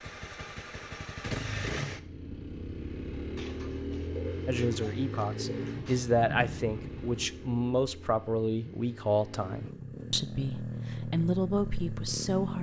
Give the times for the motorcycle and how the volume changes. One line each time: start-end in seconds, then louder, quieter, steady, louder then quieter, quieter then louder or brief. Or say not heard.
0.0-12.5 quieter then louder.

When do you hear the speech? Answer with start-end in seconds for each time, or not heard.
4.5-12.5.